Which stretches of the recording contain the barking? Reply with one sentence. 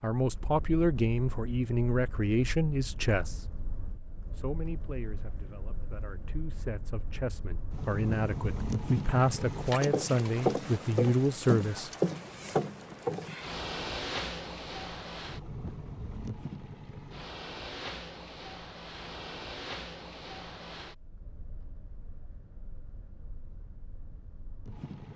You can't hear the barking here.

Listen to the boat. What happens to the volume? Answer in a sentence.
The volume of the boat goes up, then down.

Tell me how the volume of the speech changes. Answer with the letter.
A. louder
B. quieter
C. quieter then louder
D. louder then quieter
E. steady
C.